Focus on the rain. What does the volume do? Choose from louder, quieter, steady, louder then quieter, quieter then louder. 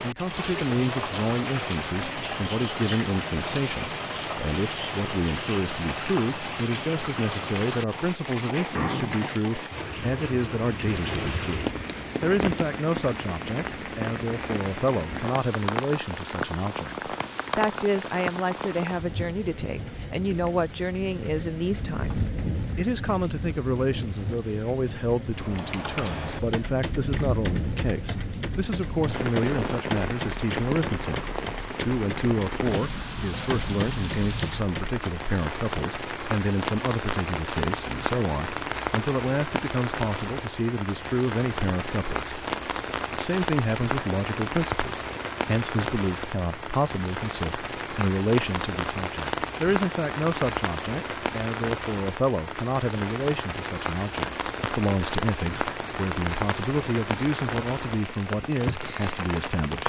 steady.